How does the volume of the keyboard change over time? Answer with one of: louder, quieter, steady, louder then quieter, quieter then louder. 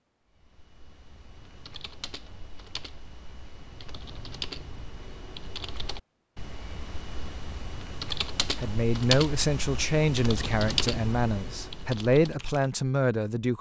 louder.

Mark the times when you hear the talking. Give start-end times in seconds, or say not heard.
8.6-13.5.